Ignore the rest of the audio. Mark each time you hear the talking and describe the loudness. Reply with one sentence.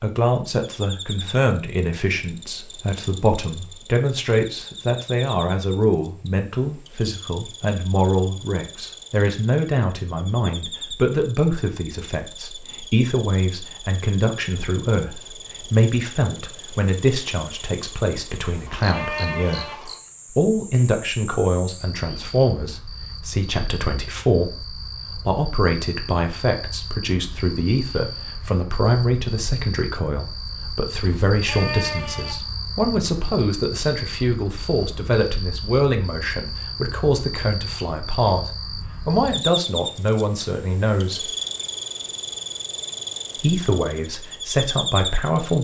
The talking can be heard from 0.0 to 41.3 s, at a steady volume; and briefly from 43.4 to 45.5 s.